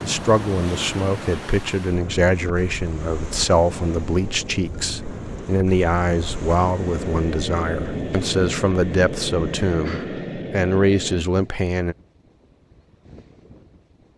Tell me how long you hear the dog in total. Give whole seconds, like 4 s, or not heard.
not heard.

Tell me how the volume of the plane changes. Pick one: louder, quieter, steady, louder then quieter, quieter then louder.
steady.